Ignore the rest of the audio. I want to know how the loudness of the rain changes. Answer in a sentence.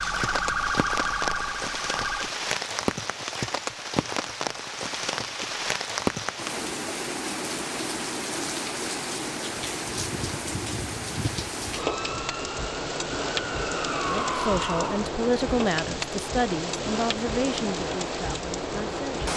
The volume of the rain stays about the same.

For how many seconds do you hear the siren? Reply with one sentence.
You can hear the siren for 6 seconds altogether.